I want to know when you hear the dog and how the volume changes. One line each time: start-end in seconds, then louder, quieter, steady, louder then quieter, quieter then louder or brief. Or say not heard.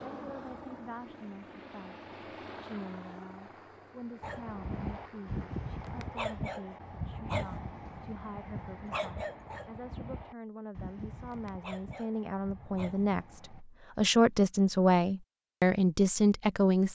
4.2-13.6 quieter.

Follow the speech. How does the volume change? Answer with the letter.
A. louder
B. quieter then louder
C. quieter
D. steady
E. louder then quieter
A.